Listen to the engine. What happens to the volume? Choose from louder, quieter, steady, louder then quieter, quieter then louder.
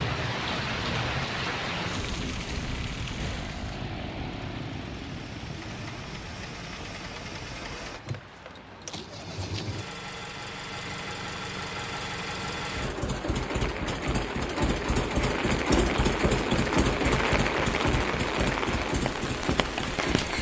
louder.